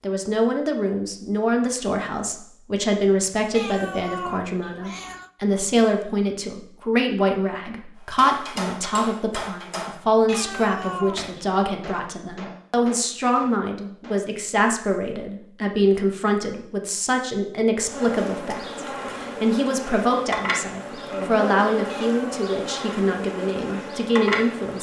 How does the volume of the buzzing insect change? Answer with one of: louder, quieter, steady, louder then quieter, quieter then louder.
steady.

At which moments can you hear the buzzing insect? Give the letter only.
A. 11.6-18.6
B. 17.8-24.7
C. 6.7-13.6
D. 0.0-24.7
B.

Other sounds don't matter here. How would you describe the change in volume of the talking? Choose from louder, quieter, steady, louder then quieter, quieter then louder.
steady.